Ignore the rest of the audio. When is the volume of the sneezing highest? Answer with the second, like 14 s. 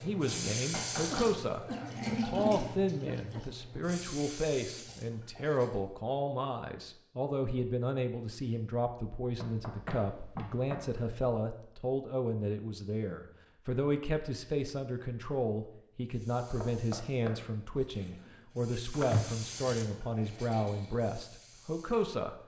19 s.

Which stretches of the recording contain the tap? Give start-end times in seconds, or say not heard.
0.0-5.8, 16.1-22.1.